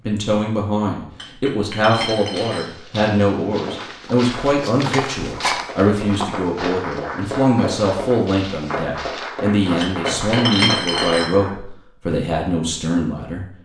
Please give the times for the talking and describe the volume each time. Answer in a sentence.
You can hear the talking from 0.0 to 13.4 s, at a steady volume.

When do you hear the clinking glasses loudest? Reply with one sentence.
The loudest moment of the clinking glasses is at 11 seconds.